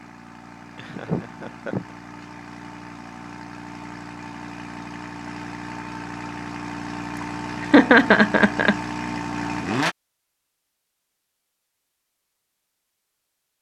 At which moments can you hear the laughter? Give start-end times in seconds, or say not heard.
0.8-1.9, 7.2-8.8.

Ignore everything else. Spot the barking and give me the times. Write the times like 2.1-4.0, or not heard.
not heard.